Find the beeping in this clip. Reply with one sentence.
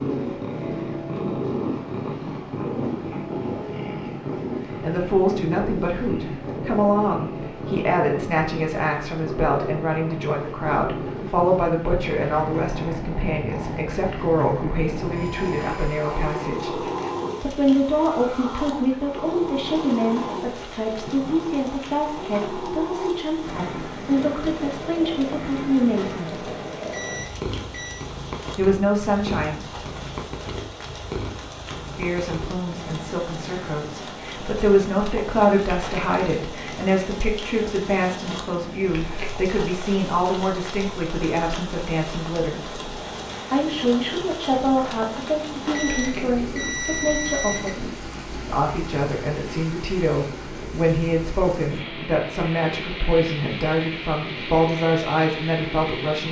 You can hear the beeping from 15.2 to 16.0 s, from 26.9 to 28.1 s and from 45.7 to 47.8 s.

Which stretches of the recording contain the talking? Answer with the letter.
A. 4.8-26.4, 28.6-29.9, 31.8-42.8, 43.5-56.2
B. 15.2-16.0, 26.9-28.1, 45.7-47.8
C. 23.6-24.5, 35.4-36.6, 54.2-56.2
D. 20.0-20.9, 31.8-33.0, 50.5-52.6
A.